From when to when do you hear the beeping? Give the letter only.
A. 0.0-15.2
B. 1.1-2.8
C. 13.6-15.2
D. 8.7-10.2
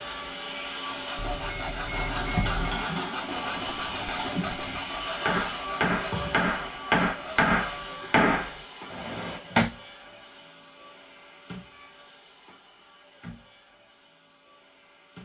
B.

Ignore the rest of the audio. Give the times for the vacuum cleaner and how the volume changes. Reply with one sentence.
The vacuum cleaner can be heard from 0.0 to 15.2 s, getting quieter.